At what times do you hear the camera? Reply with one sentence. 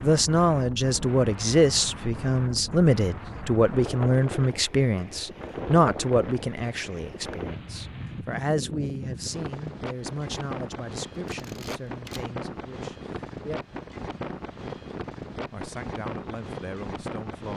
The camera can be heard from 11.2 to 12.2 s.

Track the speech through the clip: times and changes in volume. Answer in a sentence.
The speech can be heard from 0.0 to 13.6 s, getting quieter; and briefly from 15.4 to 17.5 s.